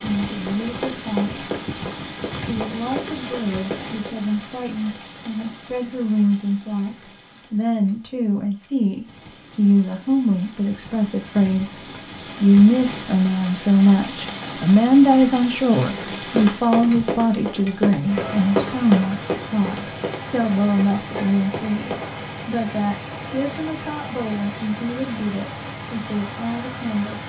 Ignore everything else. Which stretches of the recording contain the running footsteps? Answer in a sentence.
You can hear the running footsteps from 0.3 to 4.2 s and from 15.9 to 22.1 s.